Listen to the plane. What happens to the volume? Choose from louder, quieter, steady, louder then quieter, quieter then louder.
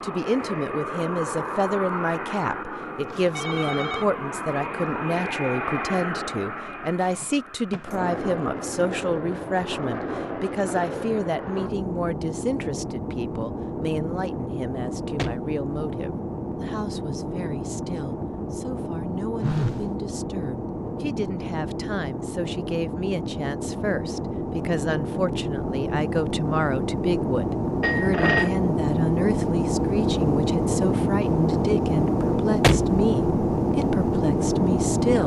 louder.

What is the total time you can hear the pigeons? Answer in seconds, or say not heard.
not heard.